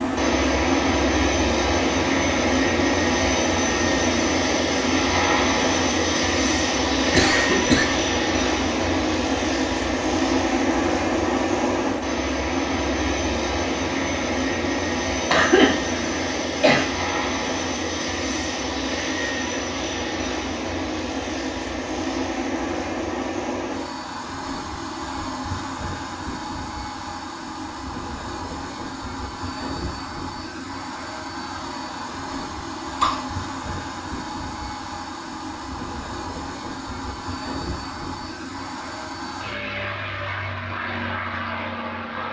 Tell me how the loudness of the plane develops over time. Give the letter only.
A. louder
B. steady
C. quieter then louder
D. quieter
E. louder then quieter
D.